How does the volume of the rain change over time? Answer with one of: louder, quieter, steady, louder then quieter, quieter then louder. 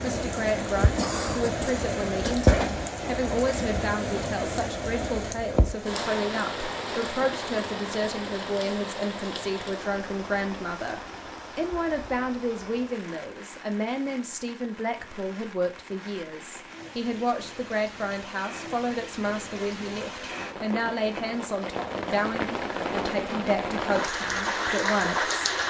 quieter then louder.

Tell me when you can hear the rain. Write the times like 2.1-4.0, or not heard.
0.0-25.6.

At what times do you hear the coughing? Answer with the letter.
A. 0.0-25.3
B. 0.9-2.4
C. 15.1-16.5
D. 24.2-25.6
B.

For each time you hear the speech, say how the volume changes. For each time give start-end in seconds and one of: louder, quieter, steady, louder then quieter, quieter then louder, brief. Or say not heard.
0.0-25.3 steady.